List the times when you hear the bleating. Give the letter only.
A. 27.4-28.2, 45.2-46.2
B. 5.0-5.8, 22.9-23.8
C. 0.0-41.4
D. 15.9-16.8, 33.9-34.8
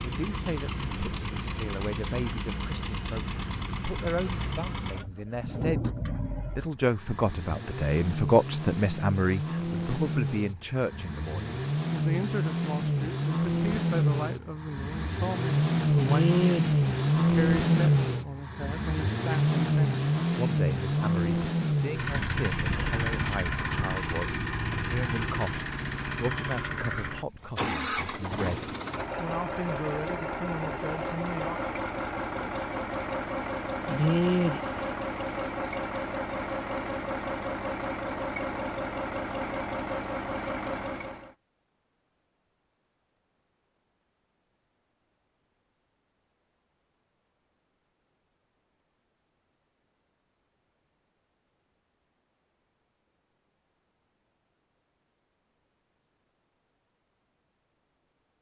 D.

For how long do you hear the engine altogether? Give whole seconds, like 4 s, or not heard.
41 s.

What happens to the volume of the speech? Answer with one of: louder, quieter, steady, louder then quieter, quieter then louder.
louder then quieter.